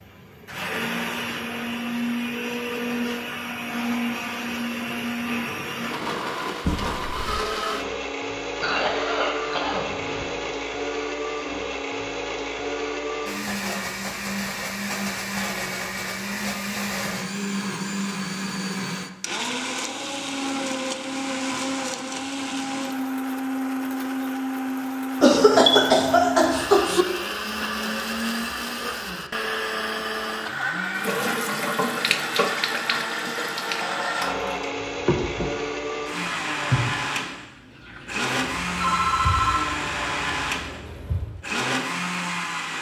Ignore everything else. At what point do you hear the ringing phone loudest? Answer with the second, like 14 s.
39 s.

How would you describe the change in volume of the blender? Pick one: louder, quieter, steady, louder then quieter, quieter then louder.
steady.